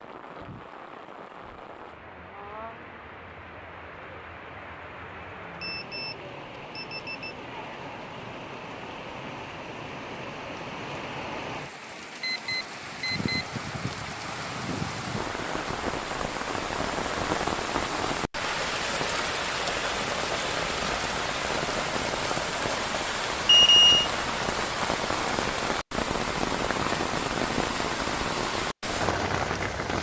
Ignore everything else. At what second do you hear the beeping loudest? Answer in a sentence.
The loudest moment of the beeping is at 24 seconds.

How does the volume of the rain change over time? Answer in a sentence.
The loudness of the rain goes up.